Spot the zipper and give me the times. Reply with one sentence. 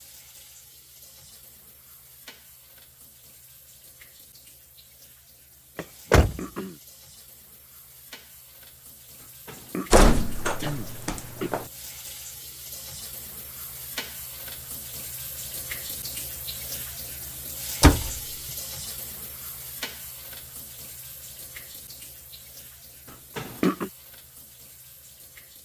The zipper can't be heard in this clip.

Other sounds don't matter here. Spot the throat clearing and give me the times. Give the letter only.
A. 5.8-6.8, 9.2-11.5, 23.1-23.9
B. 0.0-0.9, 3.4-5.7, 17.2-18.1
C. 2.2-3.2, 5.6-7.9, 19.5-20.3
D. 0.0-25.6
A.